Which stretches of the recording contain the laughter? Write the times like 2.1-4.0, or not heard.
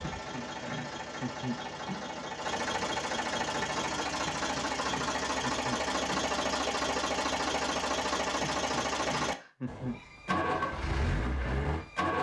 0.0-2.0, 4.2-6.3, 8.4-10.4.